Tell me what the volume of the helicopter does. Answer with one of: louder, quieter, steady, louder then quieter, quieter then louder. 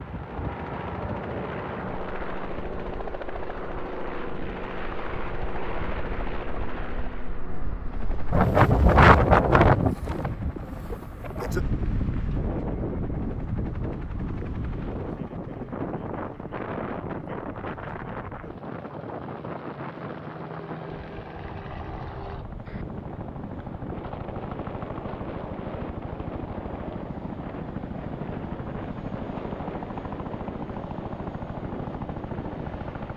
quieter then louder.